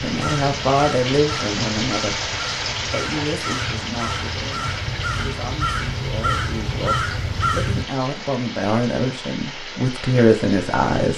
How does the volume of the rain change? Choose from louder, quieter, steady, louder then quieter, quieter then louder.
quieter.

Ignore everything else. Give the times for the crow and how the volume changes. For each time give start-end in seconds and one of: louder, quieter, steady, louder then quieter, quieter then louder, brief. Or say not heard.
0.0-7.8 louder.